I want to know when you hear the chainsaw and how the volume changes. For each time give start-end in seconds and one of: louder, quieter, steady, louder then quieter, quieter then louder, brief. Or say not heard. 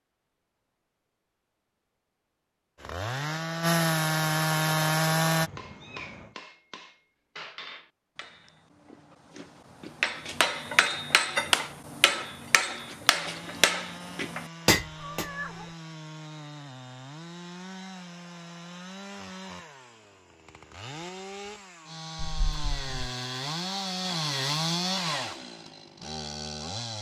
2.8-5.5 brief
13.1-26.9 louder.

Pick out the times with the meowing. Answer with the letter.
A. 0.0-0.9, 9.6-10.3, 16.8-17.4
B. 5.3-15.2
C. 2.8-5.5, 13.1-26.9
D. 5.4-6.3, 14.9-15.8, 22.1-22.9
D.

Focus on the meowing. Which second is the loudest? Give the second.
15 s.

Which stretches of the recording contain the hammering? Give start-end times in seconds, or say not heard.
5.3-15.2.